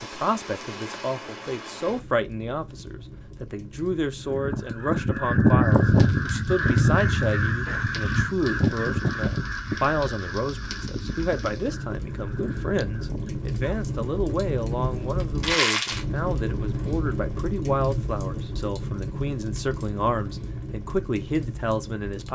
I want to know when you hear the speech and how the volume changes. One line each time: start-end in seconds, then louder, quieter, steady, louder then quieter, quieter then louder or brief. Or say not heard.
0.0-22.3 steady.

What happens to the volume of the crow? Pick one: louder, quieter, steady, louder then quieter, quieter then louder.
quieter.